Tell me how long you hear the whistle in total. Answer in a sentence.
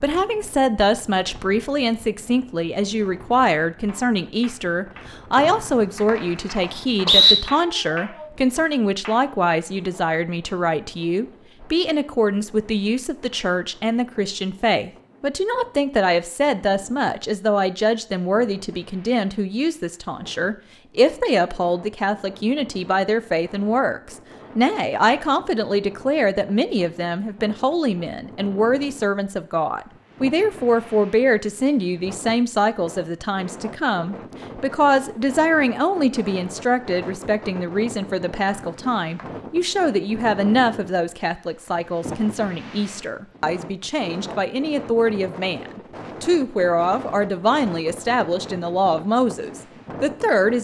The whistle can be heard for 3 seconds in total.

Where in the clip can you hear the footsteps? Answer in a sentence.
The footsteps can't be heard in this clip.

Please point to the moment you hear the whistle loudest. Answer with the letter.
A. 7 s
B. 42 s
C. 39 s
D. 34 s
A.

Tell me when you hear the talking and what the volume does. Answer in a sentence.
You can hear the talking from 0.0 to 50.5 s, at a steady volume.